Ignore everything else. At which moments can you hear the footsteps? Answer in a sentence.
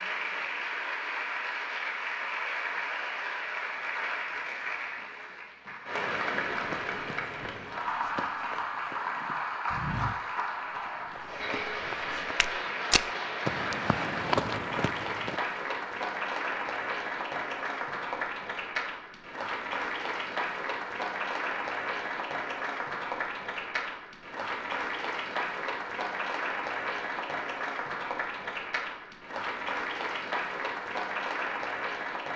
You can hear the footsteps from 6.5 to 15.3 s.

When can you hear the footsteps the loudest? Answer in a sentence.
The loudest moment of the footsteps is at 14 seconds.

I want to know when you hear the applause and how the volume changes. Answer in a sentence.
The applause can be heard from 0.0 to 32.3 s, at a steady volume.